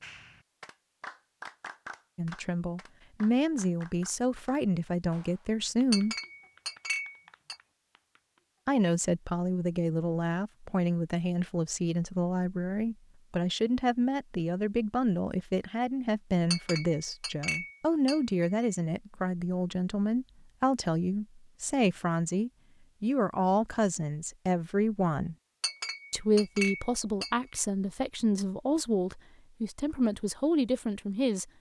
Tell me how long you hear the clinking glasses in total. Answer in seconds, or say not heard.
6 s.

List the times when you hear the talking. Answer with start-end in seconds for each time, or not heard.
2.1-6.2, 8.7-25.4, 26.1-31.5.